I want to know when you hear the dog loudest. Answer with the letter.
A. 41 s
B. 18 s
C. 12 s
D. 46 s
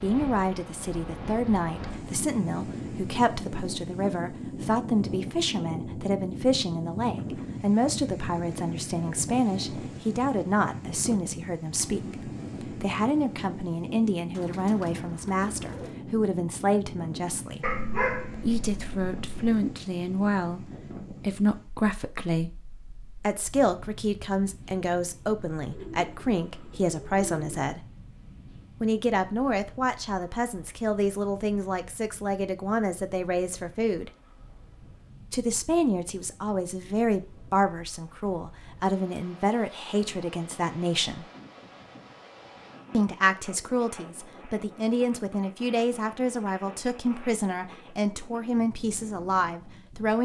B.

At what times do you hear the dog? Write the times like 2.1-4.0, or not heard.
17.6-19.6.